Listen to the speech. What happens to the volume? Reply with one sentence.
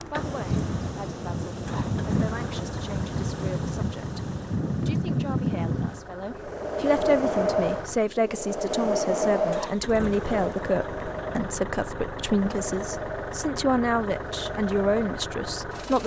The loudness of the speech goes up.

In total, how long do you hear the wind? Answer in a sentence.
You can hear the wind for 16 seconds altogether.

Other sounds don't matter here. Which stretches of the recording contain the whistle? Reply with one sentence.
You can't hear the whistle here.